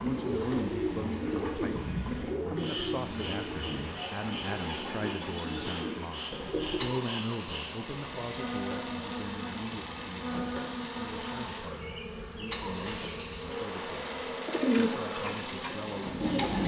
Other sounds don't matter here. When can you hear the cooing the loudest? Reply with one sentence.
The volume of the cooing peaks at 15 seconds.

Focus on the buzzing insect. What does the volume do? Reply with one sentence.
The loudness of the buzzing insect stays about the same.